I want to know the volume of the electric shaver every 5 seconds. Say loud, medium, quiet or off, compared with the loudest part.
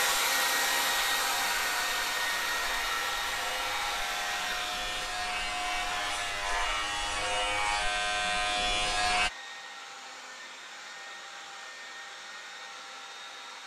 medium, loud, off.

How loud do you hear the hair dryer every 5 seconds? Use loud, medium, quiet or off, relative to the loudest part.
loud, medium, quiet.